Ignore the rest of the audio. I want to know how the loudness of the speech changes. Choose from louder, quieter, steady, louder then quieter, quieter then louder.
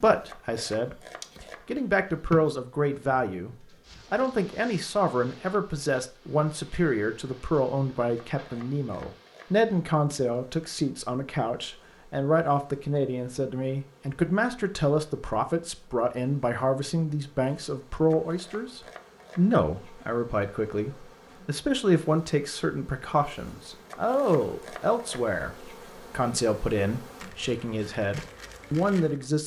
steady.